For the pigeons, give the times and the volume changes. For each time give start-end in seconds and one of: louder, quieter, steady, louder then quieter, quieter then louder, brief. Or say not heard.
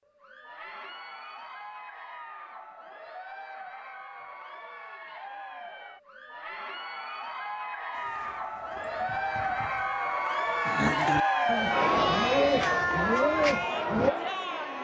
7.9-14.2 louder.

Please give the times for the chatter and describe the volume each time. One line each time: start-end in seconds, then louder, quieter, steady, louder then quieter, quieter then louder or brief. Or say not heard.
0.1-14.7 louder.